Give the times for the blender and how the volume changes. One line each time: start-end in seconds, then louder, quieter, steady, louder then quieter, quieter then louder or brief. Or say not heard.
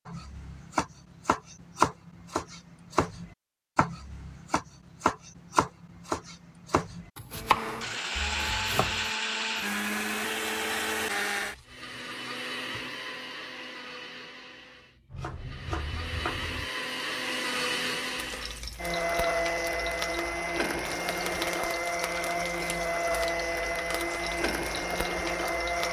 7.3-25.8 quieter then louder.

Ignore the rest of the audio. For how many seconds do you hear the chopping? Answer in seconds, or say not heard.
11 s.